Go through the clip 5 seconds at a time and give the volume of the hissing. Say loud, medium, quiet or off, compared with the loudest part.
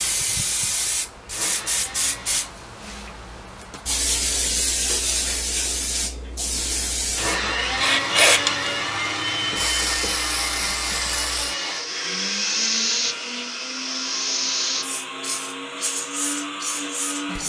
loud, loud, loud, medium.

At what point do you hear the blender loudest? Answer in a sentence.
The loudest moment of the blender is at 8 seconds.